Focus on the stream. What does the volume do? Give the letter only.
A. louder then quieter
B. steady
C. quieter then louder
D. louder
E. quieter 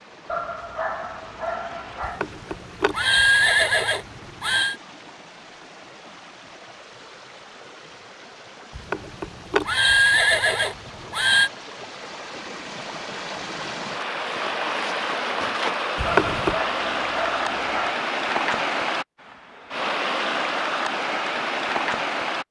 D.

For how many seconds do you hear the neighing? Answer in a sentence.
The neighing can be heard for 6 seconds in total.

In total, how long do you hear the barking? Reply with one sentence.
You can hear the barking for 4 seconds altogether.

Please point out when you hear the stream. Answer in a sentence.
You can hear the stream from 0.0 to 22.4 s.